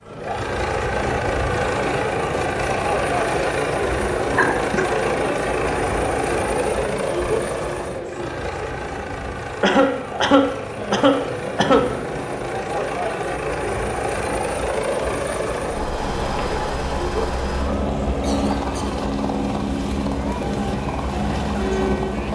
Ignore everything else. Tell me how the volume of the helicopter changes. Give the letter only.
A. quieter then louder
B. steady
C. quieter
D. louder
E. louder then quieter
A.